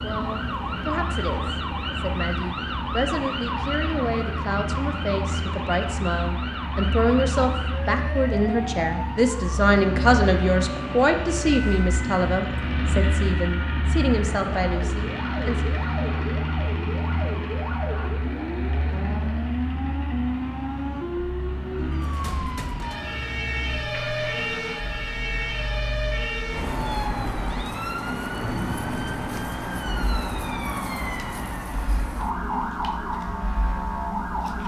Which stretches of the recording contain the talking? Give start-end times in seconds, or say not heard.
0.0-15.7.